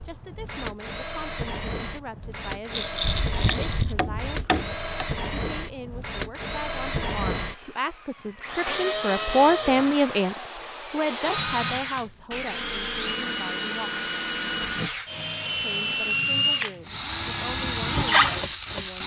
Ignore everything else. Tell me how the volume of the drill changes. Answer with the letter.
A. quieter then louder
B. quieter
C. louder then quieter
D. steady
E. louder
E.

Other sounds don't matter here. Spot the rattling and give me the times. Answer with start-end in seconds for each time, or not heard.
2.7-3.9.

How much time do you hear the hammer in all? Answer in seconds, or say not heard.
2 s.